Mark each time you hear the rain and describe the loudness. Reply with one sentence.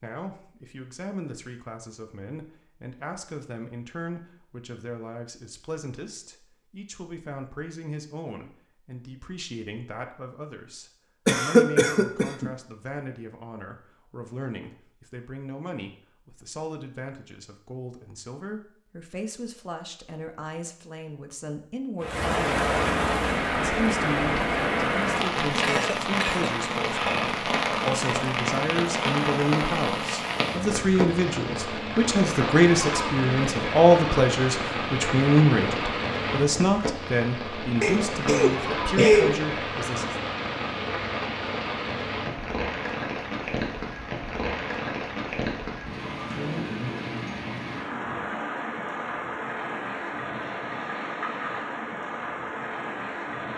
The rain can be heard from 22.0 to 53.5 s, getting quieter.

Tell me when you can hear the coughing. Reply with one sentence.
The coughing can be heard from 11.2 to 12.5 s, from 25.6 to 26.4 s and from 37.8 to 39.4 s.